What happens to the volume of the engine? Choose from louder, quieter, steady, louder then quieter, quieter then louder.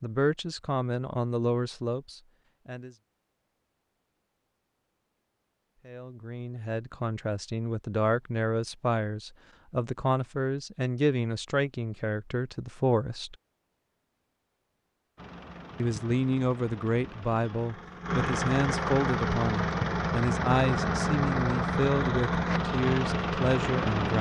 louder.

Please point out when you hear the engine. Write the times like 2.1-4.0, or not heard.
15.2-24.1.